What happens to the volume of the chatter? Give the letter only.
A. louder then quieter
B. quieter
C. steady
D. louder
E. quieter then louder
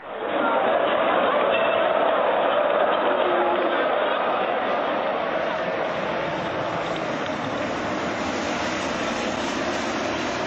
B.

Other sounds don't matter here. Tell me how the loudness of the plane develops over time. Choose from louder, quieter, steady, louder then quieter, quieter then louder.
louder.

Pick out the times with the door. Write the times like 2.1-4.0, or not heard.
not heard.